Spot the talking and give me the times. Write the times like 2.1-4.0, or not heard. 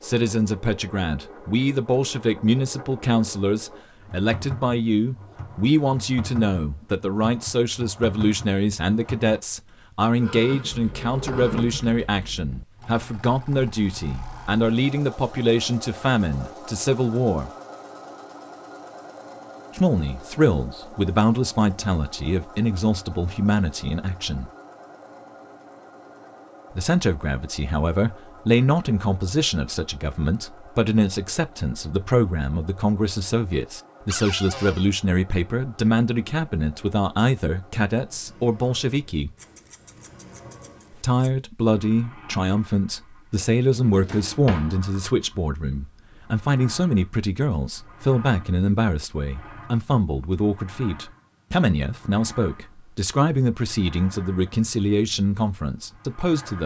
0.0-17.5, 19.8-24.5, 26.8-39.3, 40.9-56.6.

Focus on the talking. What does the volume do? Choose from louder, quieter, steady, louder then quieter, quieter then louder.
steady.